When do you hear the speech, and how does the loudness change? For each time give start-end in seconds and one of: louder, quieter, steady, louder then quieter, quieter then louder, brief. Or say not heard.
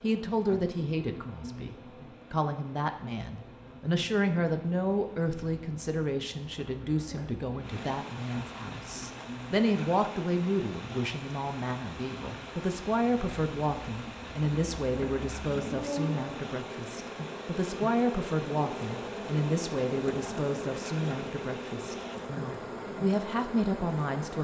0.0-24.3 steady.